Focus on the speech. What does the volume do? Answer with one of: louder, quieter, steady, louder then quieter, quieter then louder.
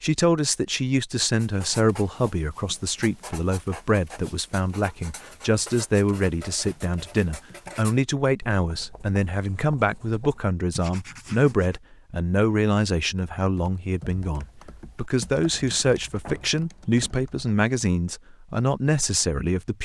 steady.